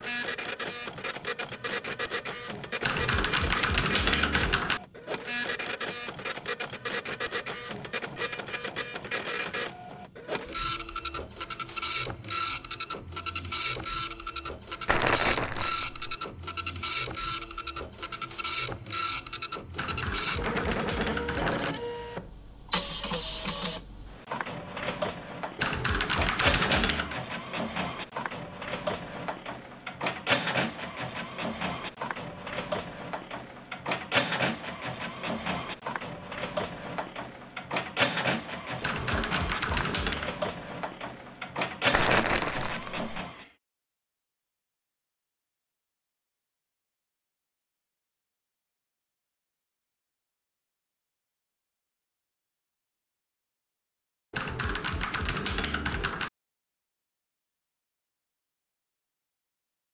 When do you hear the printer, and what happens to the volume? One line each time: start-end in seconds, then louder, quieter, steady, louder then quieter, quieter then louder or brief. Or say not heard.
0.0-43.5 steady.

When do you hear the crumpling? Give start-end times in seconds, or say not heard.
14.8-16.0, 41.9-43.1.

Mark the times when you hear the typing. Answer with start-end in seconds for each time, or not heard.
2.8-4.8, 19.8-21.8, 25.6-27.2, 38.8-40.3, 54.3-56.3.